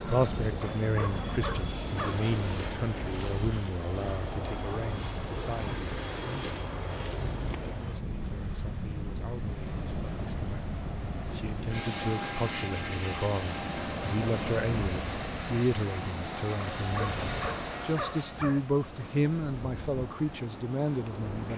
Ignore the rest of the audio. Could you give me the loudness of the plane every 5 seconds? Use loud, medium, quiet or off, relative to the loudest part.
loud, loud, loud, loud, off.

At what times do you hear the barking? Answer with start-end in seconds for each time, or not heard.
0.6-2.2, 16.8-18.6.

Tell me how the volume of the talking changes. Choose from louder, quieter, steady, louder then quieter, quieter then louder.
quieter then louder.